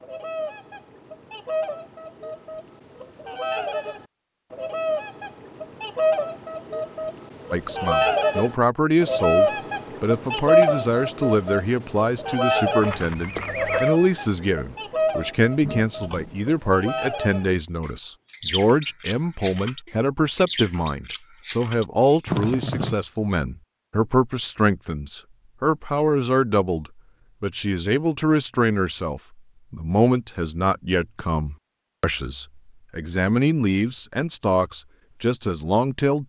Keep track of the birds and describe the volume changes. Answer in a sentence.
The volume of the birds goes up, then down.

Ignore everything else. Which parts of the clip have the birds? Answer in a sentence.
You can hear the birds from 0.0 to 23.1 s.